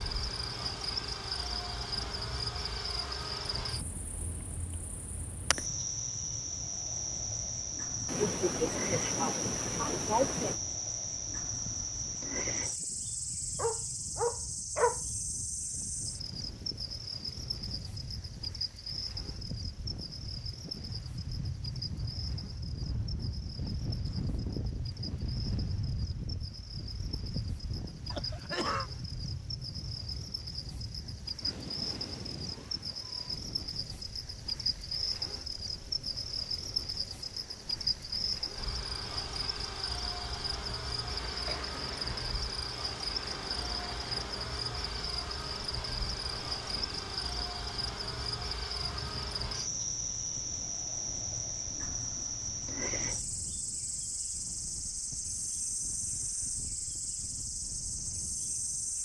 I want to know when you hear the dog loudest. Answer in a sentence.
The loudest moment of the dog is at 15 seconds.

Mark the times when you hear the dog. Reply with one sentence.
You can hear the dog from 13.6 to 15.0 s.